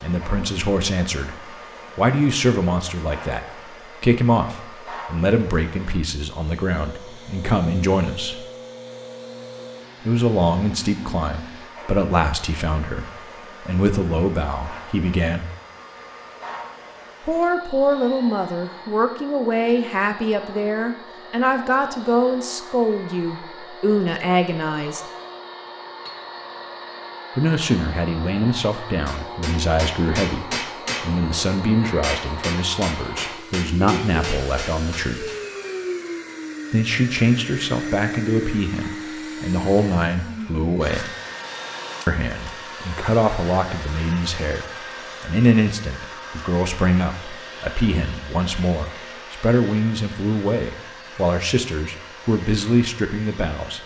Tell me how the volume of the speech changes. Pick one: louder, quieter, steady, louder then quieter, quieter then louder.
steady.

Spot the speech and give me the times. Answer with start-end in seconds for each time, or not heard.
0.0-8.4, 10.1-15.4, 17.2-25.0, 27.4-35.3, 36.7-41.1, 42.0-53.8.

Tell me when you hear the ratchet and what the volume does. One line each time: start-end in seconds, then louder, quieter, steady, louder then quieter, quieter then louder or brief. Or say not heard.
not heard.